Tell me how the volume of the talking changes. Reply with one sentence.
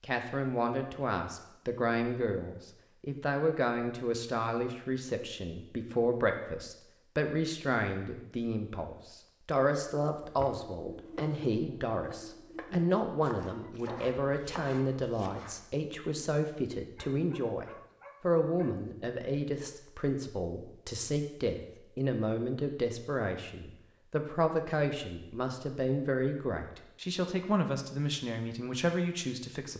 The loudness of the talking stays about the same.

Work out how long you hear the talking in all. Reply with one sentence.
The talking can be heard for 30 seconds in total.